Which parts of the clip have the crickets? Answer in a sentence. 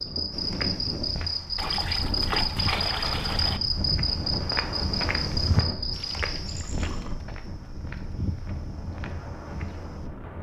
You can hear the crickets from 0.0 to 6.8 s.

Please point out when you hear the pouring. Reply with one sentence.
You can hear the pouring from 1.6 to 3.6 s and from 5.9 to 7.2 s.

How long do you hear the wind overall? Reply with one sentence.
You can hear the wind for 10 seconds altogether.